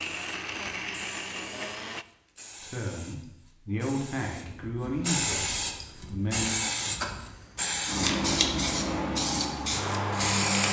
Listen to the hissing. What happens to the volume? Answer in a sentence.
The volume of the hissing goes up.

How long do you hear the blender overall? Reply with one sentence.
The blender can be heard for 2 seconds in total.